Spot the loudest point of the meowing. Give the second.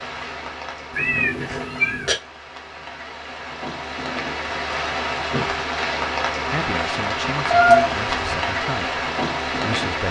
8 s.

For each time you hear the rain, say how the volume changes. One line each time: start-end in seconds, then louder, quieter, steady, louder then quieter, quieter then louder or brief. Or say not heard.
0.0-10.0 louder.